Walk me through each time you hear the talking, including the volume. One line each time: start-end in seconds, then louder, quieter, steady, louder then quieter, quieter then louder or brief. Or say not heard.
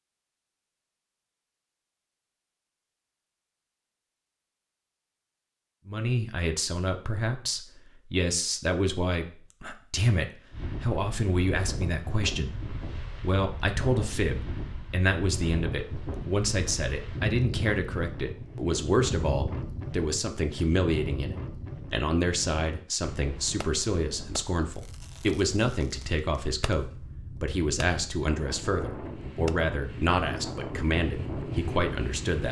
5.8-32.4 steady.